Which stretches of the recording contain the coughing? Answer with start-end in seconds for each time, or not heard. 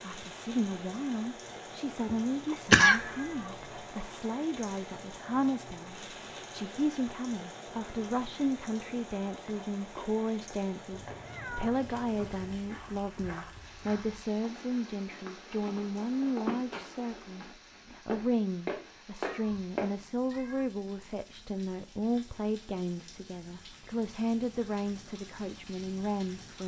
2.0-3.0.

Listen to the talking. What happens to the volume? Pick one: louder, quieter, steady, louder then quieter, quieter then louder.
steady.